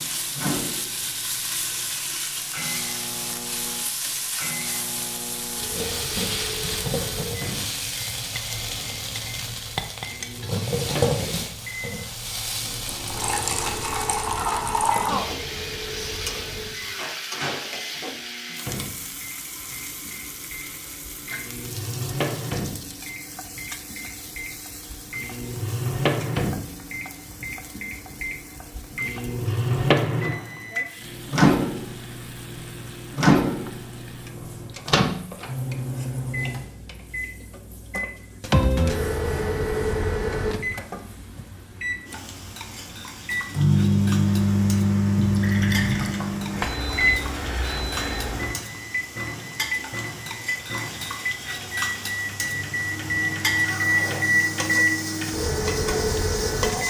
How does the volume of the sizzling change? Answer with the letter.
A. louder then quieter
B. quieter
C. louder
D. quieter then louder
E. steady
D.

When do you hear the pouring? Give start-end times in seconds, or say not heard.
12.8-15.2, 45.1-46.2.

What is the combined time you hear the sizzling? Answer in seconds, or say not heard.
57 s.